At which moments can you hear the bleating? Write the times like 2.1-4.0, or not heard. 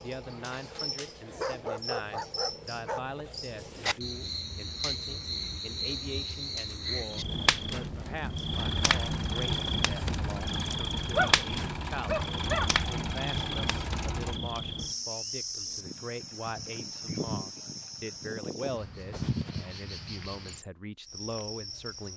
not heard.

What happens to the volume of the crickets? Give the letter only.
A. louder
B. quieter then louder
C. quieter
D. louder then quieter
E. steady
D.